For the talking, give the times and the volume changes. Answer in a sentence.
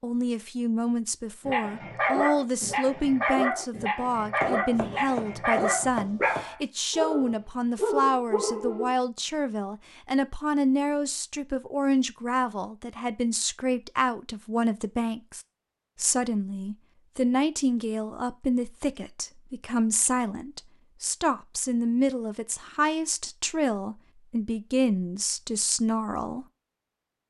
You can hear the talking from 0.0 to 26.4 s, at a steady volume.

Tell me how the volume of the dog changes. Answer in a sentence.
The loudness of the dog stays about the same.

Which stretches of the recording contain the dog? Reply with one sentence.
The dog can be heard from 1.4 to 8.9 s.